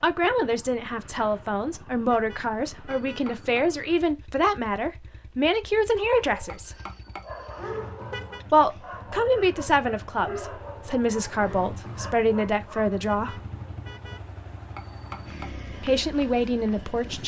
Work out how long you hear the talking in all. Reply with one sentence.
The talking can be heard for 13 seconds in total.